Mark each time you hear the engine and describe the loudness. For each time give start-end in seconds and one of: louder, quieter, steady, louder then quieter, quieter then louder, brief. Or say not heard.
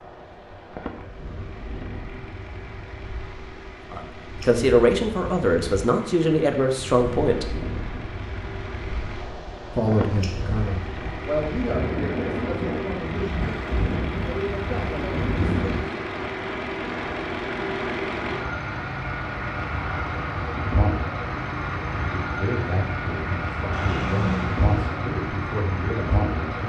0.0-26.6 louder.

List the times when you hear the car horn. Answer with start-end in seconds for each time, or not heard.
23.7-24.9.